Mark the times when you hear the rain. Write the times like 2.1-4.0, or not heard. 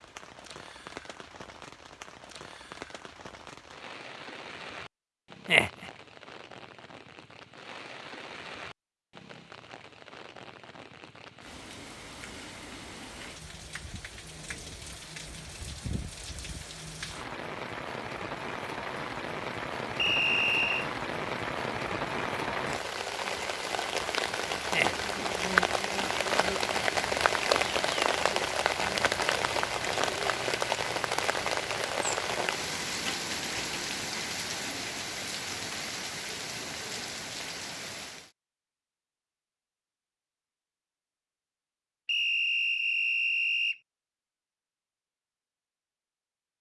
0.0-38.3.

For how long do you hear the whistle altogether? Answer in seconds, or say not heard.
3 s.